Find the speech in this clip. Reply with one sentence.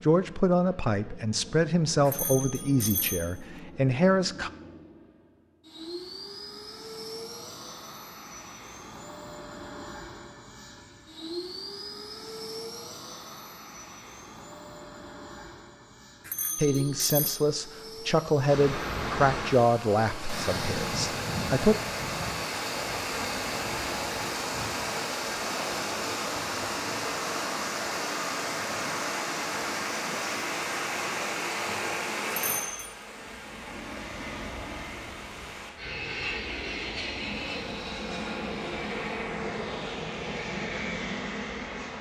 You can hear the speech from 0.0 to 4.5 s and from 16.6 to 21.8 s.